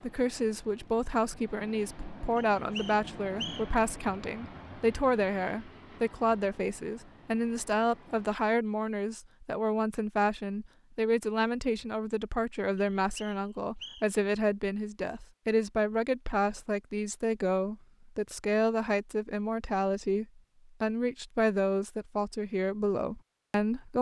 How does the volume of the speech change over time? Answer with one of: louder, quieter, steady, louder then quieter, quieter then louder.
steady.